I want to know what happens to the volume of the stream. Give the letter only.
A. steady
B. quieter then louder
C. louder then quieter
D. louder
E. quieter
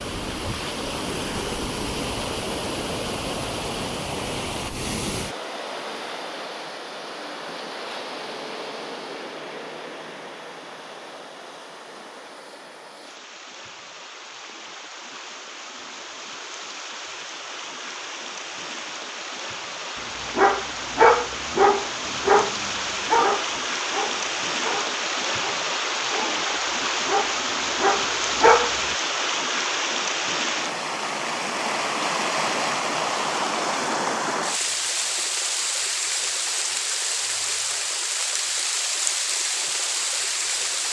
B.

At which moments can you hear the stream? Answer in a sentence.
You can hear the stream from 0.0 to 40.8 s.